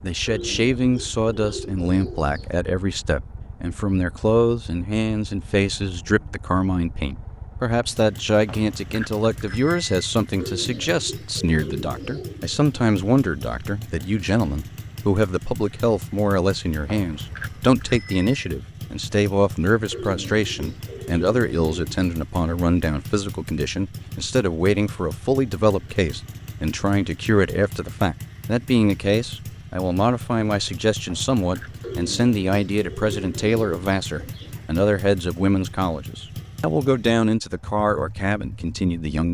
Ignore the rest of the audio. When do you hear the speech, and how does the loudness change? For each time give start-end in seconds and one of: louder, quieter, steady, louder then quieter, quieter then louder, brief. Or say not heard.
0.0-39.2 steady.